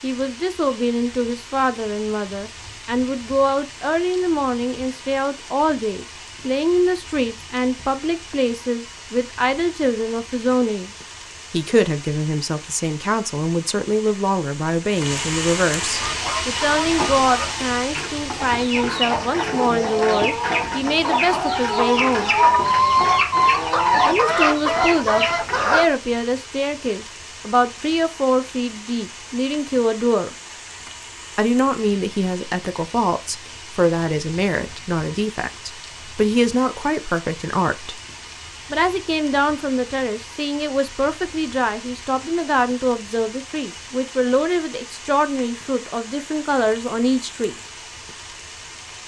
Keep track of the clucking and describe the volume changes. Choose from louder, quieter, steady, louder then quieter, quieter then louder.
louder.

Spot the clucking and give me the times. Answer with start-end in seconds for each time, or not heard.
15.9-25.9.